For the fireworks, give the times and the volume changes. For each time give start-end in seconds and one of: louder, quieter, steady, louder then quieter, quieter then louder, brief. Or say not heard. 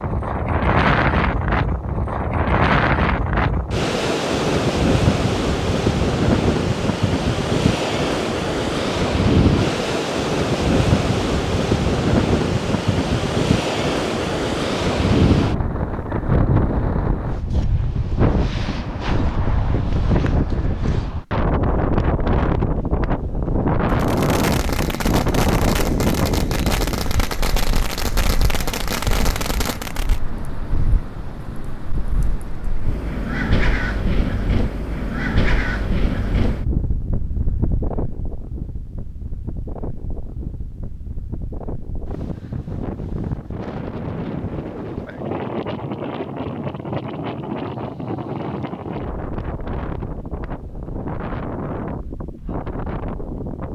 23.9-30.2 steady.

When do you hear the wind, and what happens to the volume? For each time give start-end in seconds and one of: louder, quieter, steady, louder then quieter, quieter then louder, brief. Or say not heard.
0.0-53.6 quieter.